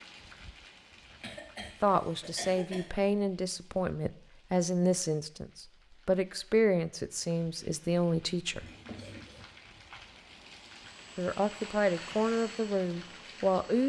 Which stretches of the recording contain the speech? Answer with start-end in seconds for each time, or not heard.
1.8-8.7, 11.2-13.8.